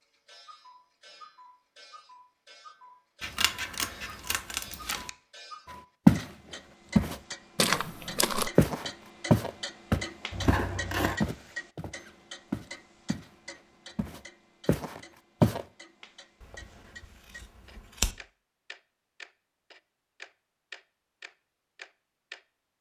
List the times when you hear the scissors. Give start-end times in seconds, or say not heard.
3.2-5.1, 10.3-11.2, 16.4-18.1.